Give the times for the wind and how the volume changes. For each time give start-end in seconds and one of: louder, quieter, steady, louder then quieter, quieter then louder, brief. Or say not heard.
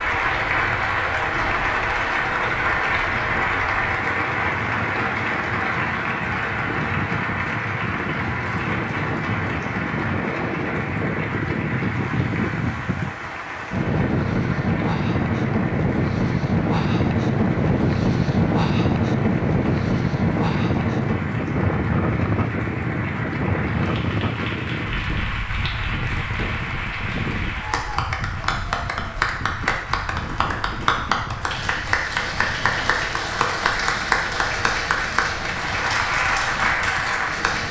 0.0-37.6 louder then quieter.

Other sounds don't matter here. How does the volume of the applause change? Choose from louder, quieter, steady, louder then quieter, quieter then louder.
quieter then louder.